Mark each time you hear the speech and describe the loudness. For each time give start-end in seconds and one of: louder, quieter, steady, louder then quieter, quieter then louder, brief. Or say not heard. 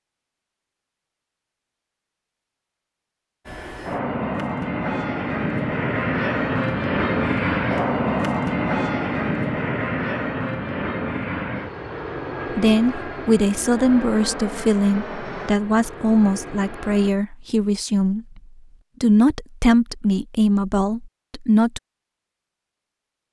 12.5-18.4 steady
19.0-21.8 brief.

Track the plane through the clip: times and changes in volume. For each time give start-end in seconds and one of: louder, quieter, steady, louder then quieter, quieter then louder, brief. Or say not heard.
3.5-17.1 quieter.